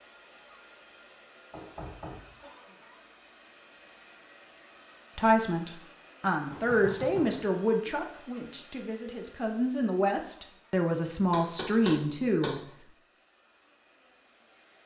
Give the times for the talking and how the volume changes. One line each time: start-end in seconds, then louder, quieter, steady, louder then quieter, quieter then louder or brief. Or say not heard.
5.2-12.6 quieter then louder.